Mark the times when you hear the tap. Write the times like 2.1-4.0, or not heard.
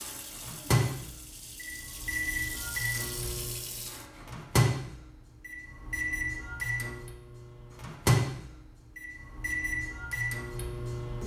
0.0-4.1.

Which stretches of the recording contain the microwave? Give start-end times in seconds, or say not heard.
0.0-11.2.